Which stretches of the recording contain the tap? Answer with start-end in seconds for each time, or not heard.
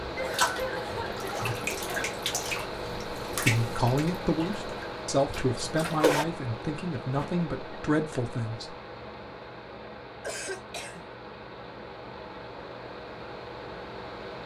0.1-6.2.